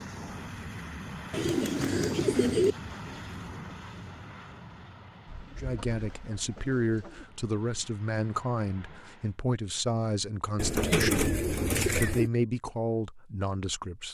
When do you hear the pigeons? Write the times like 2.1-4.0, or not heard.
1.3-2.8, 5.2-7.2, 10.6-12.3.